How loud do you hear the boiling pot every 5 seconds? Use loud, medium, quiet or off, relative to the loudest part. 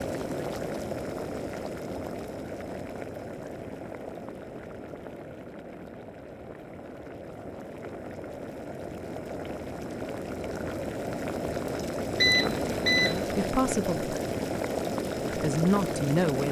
medium, medium, loud, loud.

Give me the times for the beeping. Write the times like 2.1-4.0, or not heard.
12.2-13.4.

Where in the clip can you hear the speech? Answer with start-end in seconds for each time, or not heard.
12.9-14.2, 15.3-16.4.